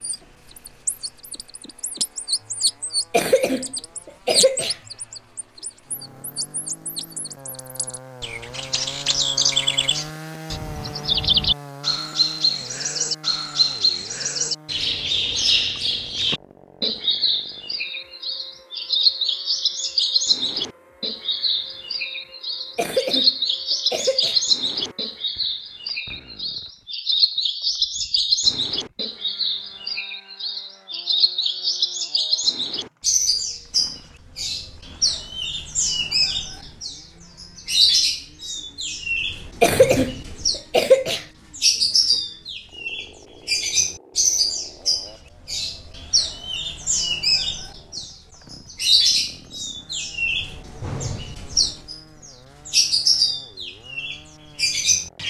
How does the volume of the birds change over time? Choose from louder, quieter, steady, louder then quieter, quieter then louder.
steady.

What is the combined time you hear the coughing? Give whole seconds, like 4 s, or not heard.
5 s.